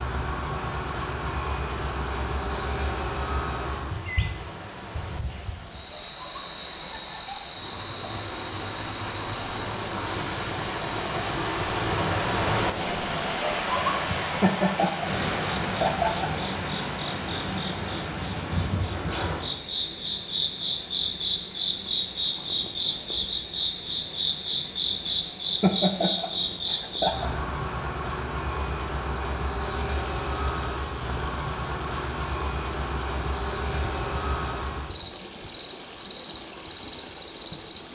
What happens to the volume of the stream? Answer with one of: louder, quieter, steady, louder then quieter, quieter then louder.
louder then quieter.